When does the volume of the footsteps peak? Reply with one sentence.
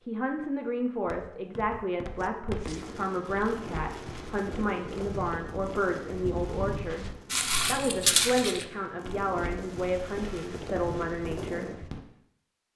The volume of the footsteps peaks at 8 seconds.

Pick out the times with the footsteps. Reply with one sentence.
You can hear the footsteps from 1.1 to 11.9 s.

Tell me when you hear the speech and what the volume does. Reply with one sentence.
You can hear the speech from 0.0 to 11.8 s, at a steady volume.